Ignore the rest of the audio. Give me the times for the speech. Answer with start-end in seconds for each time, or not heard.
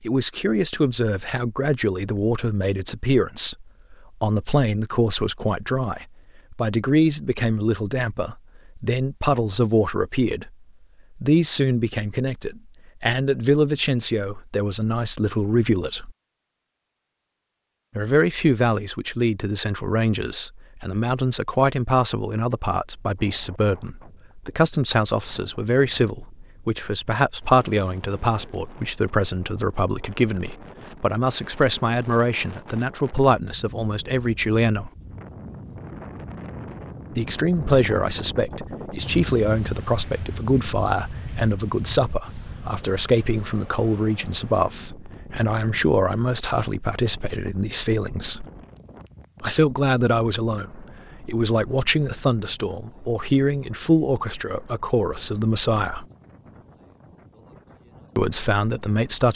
0.0-10.5, 11.2-16.1, 17.9-34.9, 37.1-48.5, 49.4-56.0, 58.1-59.3.